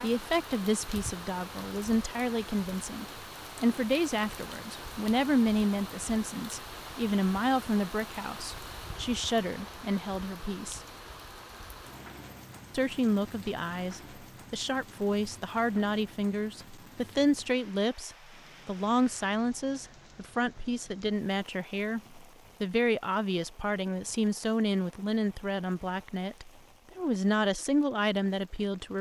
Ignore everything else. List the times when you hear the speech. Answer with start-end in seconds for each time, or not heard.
0.0-10.8, 12.7-28.9.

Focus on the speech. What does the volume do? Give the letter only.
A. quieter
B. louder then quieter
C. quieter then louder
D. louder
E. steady
E.